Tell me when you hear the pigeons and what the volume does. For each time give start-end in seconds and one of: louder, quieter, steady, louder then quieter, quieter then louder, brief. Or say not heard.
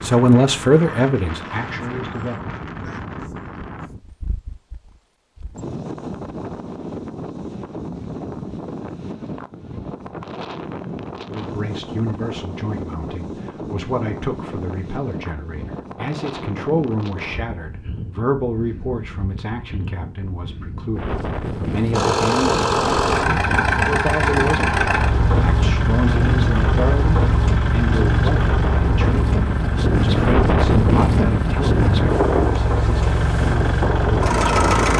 not heard.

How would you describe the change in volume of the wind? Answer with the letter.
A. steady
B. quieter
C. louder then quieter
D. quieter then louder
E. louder
E.